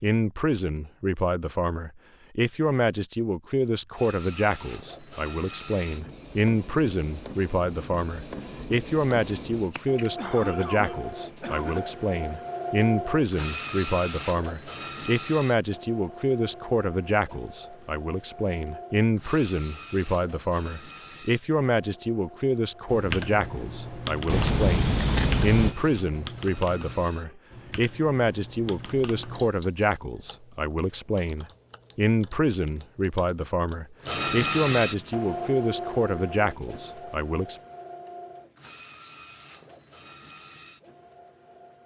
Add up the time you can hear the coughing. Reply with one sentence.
You can hear the coughing for 2 seconds altogether.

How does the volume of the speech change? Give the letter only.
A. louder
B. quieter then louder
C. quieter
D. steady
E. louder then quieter
D.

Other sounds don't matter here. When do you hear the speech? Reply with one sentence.
The speech can be heard from 0.0 to 37.5 s.